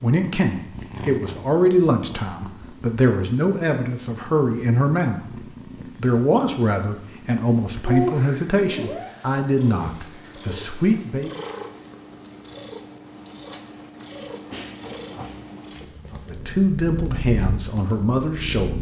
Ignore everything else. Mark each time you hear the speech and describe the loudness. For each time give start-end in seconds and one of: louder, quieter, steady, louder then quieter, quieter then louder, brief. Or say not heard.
0.0-11.3 steady
16.1-18.7 brief.